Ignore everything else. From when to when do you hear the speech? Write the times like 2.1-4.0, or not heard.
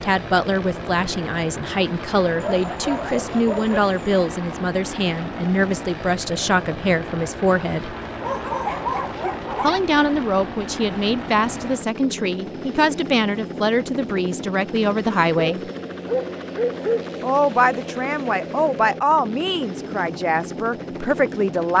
0.0-8.0, 9.6-15.7, 17.2-21.7.